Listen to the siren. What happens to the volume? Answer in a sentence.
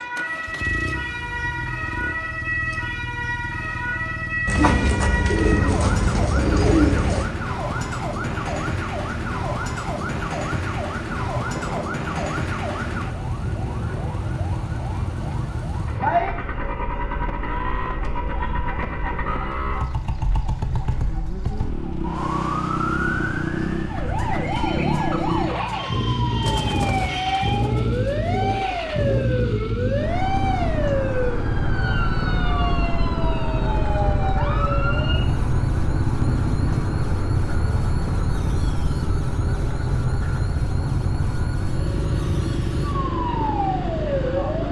The loudness of the siren stays about the same.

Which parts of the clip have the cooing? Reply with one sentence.
You can hear the cooing from 4.5 to 7.3 s and from 26.4 to 29.2 s.